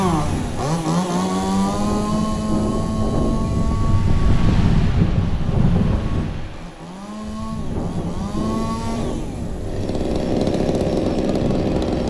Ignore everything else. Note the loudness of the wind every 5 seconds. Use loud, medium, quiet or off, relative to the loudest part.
loud, loud, medium.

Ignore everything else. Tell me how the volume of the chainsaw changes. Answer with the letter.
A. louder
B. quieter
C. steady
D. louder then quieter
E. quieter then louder
E.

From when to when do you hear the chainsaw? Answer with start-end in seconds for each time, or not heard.
0.0-12.0.